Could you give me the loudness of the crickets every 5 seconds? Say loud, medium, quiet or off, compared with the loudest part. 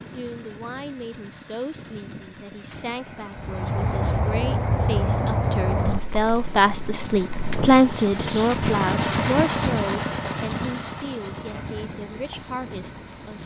loud, medium, loud.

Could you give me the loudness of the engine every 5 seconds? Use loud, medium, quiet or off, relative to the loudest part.
quiet, loud, medium.